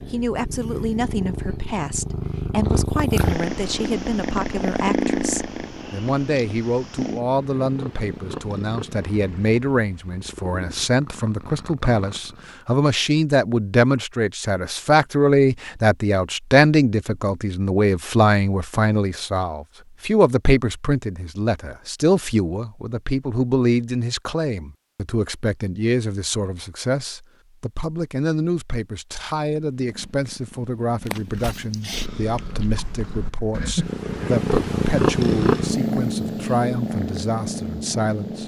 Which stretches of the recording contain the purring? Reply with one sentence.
The purring can be heard from 0.0 to 12.6 s and from 29.6 to 38.4 s.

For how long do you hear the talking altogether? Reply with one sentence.
You can hear the talking for 38 seconds altogether.